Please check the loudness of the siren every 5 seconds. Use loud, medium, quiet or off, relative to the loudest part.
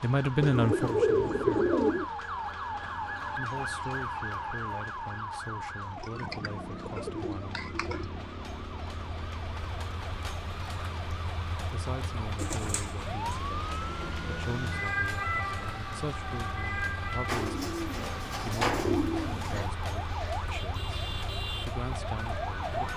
loud, medium, loud, loud, loud.